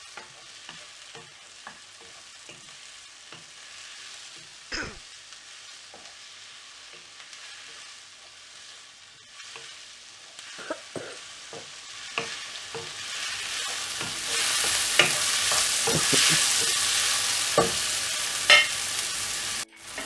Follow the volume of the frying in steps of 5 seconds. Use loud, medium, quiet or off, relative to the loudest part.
quiet, quiet, medium, loud.